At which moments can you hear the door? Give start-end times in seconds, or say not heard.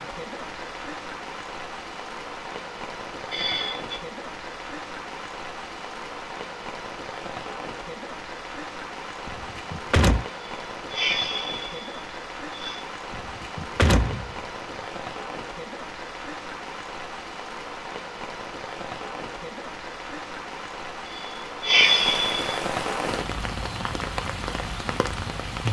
9.2-10.2, 13.1-14.3.